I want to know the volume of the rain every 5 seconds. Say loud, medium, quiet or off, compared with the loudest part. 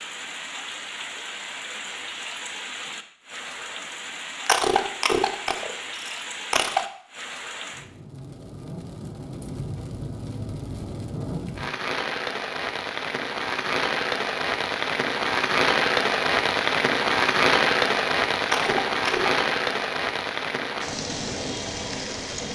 quiet, quiet, medium, loud, medium.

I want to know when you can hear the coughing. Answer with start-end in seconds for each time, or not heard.
4.5-6.8, 18.4-19.4.